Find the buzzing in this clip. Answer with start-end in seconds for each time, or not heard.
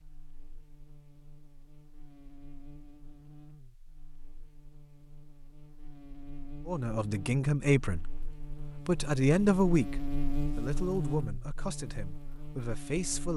0.0-13.3.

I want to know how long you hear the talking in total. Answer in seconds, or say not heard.
7 s.